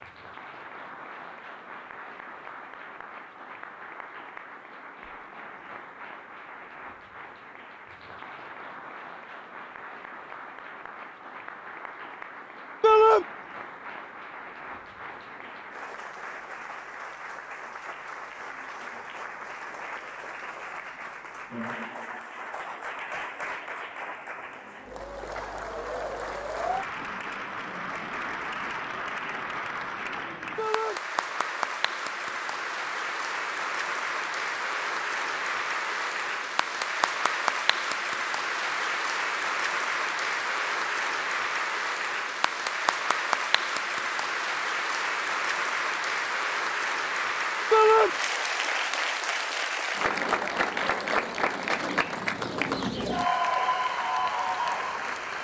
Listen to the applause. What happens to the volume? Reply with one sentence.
The volume of the applause goes up.